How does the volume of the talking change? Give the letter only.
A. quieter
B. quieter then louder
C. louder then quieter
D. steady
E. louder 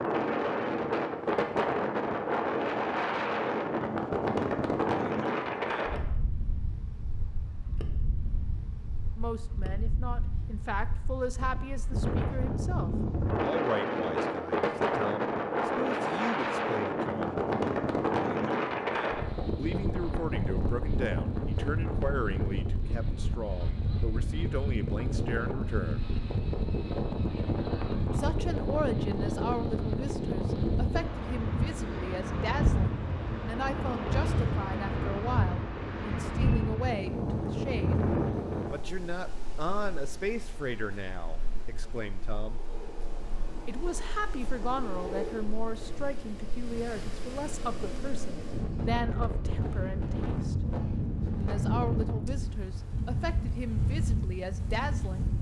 D.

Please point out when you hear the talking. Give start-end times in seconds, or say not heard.
9.2-17.4, 19.6-26.1, 28.1-38.0, 38.7-42.6, 43.6-50.5, 51.4-55.3.